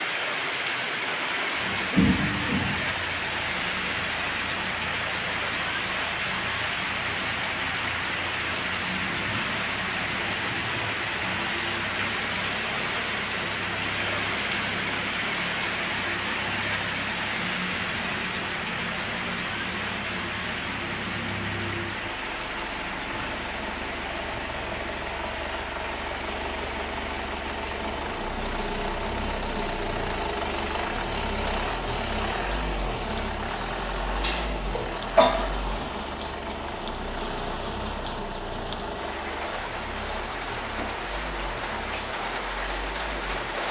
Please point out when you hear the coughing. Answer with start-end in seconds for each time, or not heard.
1.9-3.0, 34.2-35.3.